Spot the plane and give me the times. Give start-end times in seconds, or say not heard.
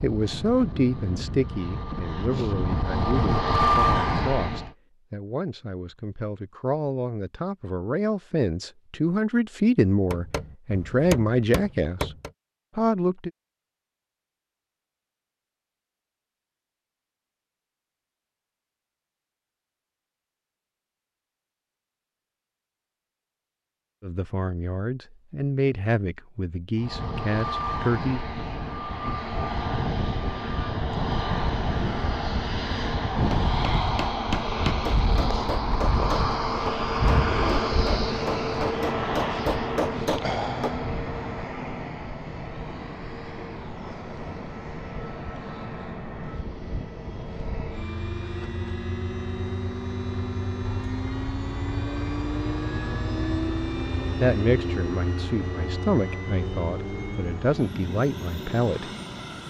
0.0-4.8, 26.8-59.4.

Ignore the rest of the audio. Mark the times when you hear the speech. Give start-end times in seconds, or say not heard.
0.0-12.1, 12.8-13.3, 24.0-28.2, 54.2-58.9.